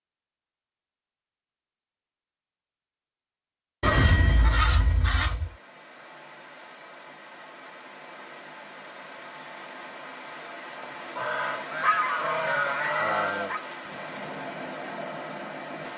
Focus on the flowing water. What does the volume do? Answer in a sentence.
The volume of the flowing water goes up.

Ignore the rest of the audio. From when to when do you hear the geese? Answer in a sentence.
The geese can be heard from 3.8 to 5.5 s and from 11.2 to 13.6 s.